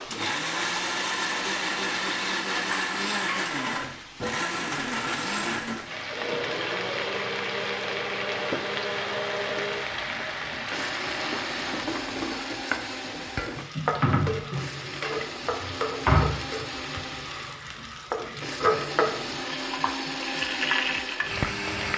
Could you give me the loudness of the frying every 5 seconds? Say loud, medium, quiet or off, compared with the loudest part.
medium, loud, loud, loud, loud.